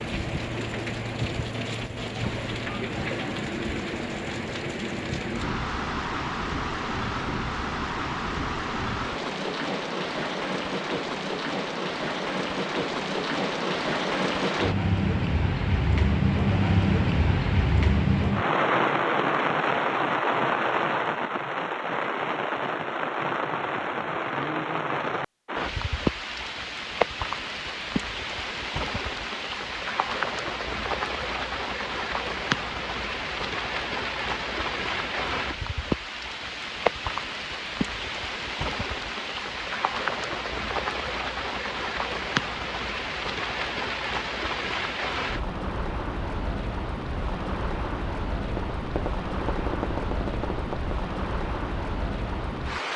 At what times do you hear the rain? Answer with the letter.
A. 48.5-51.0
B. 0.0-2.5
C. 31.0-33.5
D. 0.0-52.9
D.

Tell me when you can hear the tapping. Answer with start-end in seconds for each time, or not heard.
48.5-51.0.